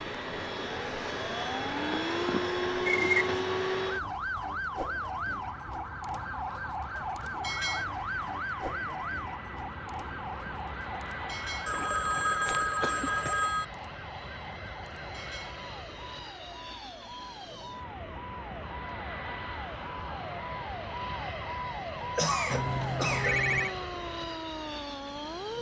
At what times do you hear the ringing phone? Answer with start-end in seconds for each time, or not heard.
1.9-2.4, 11.7-13.7, 22.5-23.8.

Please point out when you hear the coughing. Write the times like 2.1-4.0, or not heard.
2.9-3.4, 11.7-13.3, 22.0-23.4.